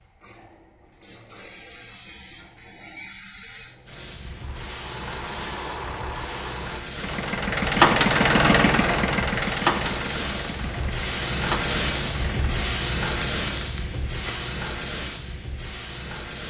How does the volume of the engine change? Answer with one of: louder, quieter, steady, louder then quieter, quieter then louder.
louder then quieter.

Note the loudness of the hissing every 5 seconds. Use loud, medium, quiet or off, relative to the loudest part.
quiet, medium, loud, medium.